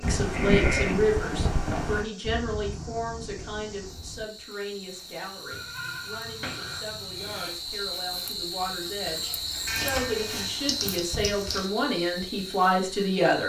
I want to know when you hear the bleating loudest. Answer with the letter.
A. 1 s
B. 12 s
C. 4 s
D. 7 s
A.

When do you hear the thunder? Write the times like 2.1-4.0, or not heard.
2.2-4.2.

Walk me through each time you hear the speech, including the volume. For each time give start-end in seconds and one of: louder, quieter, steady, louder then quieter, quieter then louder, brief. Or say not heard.
0.0-13.4 quieter then louder.